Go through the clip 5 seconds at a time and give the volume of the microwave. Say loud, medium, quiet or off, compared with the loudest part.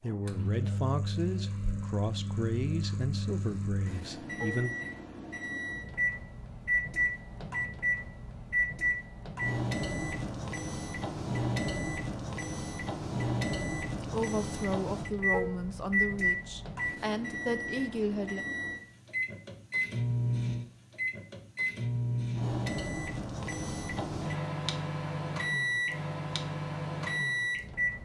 medium, loud, loud, loud, loud, loud.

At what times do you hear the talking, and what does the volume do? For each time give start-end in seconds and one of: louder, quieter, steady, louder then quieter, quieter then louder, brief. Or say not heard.
0.0-4.8 quieter
13.8-18.4 steady.